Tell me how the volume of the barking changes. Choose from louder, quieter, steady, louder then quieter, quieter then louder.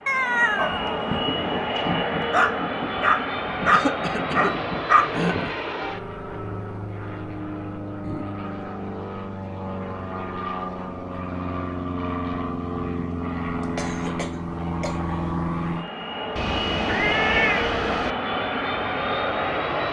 louder.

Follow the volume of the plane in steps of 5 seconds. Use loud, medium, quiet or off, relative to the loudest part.
loud, medium, loud, loud.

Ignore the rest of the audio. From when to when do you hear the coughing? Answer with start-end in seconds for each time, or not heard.
3.7-5.5, 13.6-15.4.